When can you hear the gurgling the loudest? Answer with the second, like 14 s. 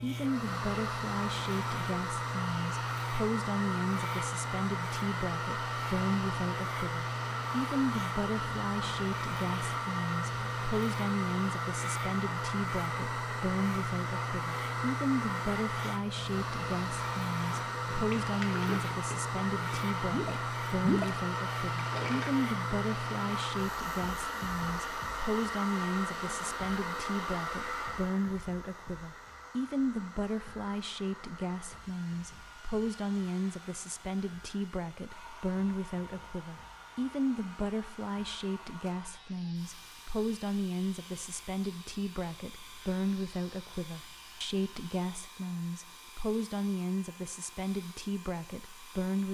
21 s.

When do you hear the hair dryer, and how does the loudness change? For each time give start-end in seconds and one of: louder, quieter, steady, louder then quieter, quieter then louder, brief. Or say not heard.
0.0-49.2 quieter.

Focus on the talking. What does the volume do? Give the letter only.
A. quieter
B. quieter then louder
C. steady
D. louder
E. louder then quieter
C.